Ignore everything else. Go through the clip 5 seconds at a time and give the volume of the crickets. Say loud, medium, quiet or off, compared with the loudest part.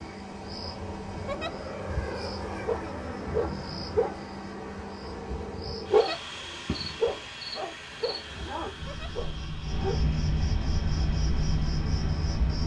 medium, medium, loud.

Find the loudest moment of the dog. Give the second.
6 s.